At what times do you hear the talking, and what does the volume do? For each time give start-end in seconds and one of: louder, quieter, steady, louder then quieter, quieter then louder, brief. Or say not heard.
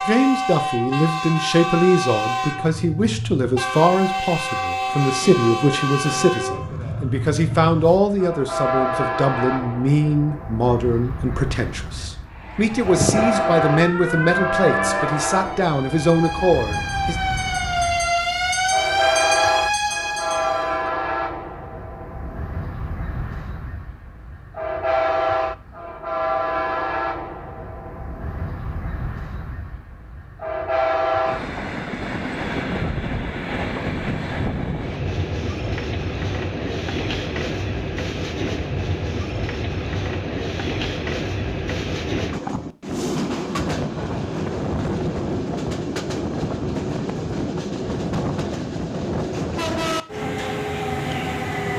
0.0-17.1 steady.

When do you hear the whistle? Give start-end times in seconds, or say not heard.
not heard.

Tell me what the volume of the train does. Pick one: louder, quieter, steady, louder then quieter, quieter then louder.
steady.